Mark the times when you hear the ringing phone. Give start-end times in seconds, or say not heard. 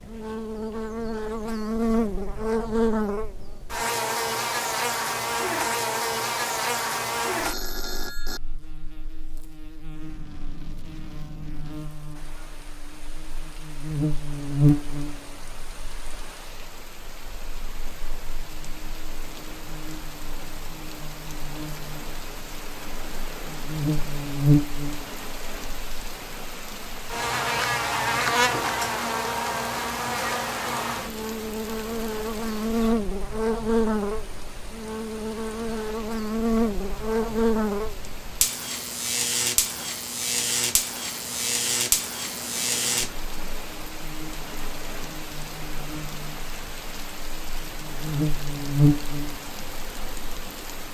7.4-8.4.